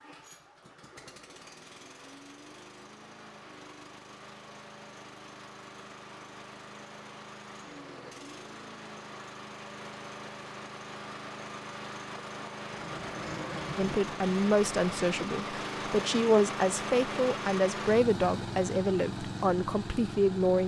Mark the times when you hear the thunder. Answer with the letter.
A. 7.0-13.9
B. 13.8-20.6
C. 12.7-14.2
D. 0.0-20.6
C.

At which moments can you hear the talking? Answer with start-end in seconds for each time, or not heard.
13.8-20.6.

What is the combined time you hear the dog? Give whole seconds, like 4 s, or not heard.
not heard.